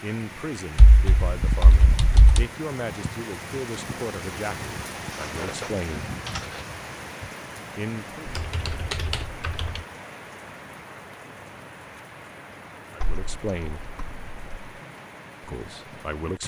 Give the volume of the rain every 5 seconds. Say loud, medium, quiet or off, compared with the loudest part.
loud, loud, medium, medium.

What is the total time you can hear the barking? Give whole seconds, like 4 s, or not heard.
not heard.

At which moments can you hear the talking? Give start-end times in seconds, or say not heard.
0.0-6.1, 7.8-8.3, 12.9-13.8, 15.4-16.4.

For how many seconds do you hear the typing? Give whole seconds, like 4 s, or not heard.
6 s.